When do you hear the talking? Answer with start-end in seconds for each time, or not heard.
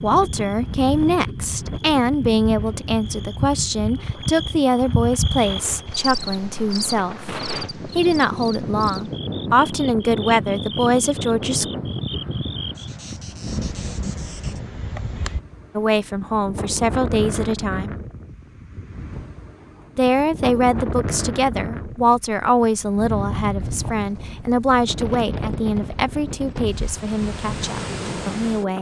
0.0-7.3, 8.0-11.7, 15.8-17.9, 19.9-28.7.